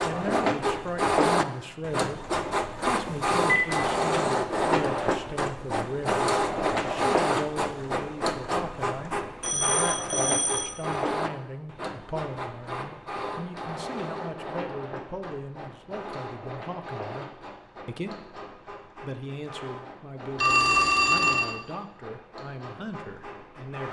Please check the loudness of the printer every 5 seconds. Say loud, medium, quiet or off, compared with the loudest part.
loud, loud, medium, quiet, quiet.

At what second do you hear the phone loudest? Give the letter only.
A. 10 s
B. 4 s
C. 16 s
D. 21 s
D.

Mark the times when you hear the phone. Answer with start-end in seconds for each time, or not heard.
3.0-3.7, 9.4-10.8, 20.4-21.5.